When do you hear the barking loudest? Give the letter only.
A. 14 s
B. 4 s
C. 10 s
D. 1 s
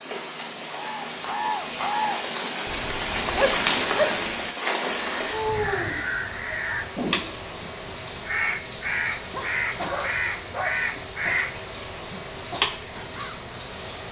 B.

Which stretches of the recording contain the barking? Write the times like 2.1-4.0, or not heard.
3.4-4.2, 9.3-11.0.